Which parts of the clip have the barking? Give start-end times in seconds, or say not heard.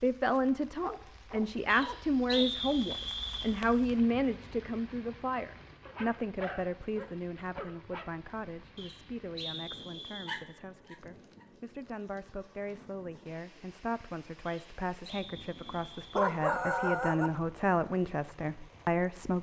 0.8-2.5, 5.8-8.1, 10.2-11.4, 15.3-17.3.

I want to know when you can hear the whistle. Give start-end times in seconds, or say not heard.
1.6-3.5, 8.8-10.4, 14.4-16.2.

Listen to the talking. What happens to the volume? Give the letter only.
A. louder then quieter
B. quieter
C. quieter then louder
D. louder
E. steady
C.